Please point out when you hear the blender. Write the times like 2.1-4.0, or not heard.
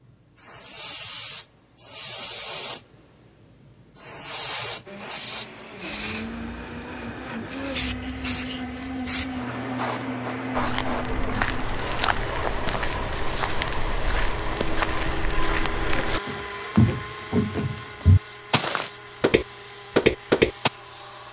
4.8-21.2.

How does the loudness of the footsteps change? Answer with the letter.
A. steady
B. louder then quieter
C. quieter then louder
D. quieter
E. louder
E.